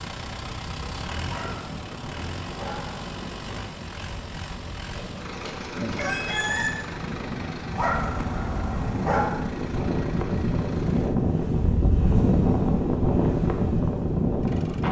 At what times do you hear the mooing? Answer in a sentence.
The mooing can't be heard in this clip.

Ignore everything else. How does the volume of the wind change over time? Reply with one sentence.
The volume of the wind goes up.